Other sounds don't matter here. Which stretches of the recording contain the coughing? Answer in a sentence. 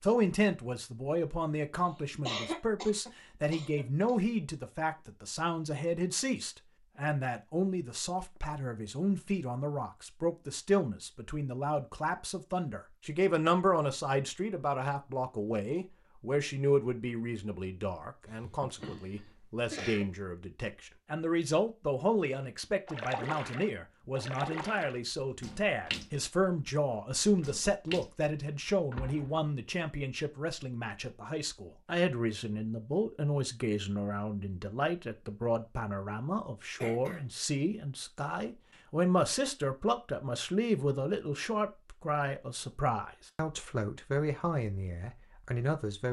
The coughing can be heard from 2.2 to 4.2 s, from 18.2 to 20.1 s and from 36.8 to 37.3 s.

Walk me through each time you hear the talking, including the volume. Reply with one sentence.
You can hear the talking from 0.0 to 46.0 s, at a steady volume.